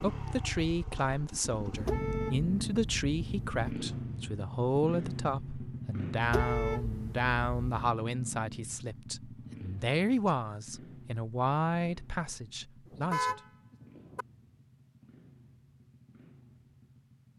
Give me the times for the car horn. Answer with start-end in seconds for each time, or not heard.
1.8-3.6, 6.2-7.8, 12.9-14.2.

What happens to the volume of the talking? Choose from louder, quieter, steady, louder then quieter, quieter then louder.
steady.